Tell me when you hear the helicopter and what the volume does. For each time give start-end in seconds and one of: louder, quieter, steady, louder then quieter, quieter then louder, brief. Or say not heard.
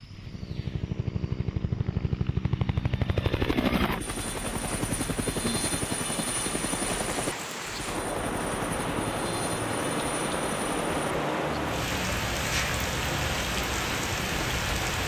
0.0-15.0 quieter.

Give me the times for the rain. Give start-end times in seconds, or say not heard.
4.0-15.0.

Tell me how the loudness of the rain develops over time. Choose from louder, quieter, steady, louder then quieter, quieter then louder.
louder.